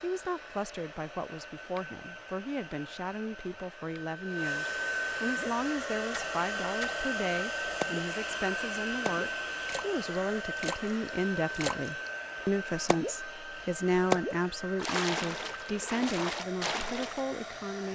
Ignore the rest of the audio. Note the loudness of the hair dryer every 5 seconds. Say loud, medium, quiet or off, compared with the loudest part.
medium, loud, medium, medium.